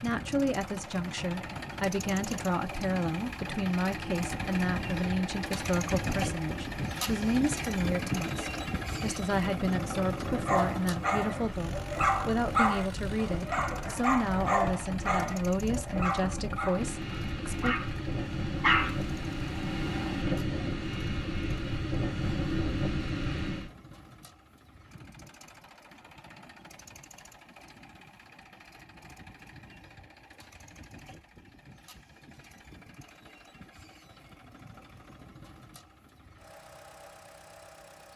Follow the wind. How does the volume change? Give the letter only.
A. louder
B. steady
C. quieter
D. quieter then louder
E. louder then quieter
A.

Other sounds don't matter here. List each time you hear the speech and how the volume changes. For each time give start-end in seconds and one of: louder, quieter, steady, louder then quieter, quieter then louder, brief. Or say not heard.
0.0-17.8 steady.